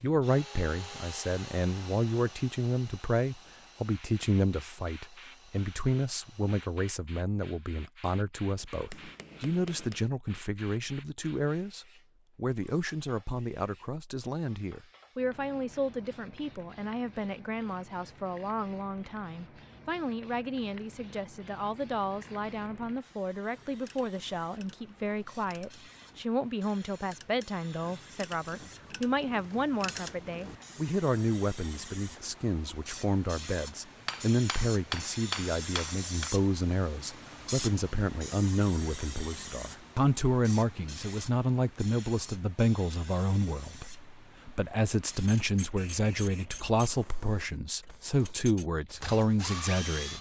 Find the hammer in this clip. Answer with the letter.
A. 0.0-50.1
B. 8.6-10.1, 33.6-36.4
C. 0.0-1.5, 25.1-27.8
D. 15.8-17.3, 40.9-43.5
B.